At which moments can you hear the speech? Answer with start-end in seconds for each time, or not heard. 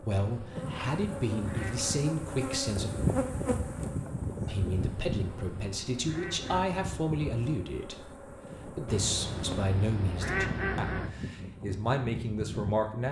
0.0-2.9, 4.5-13.0.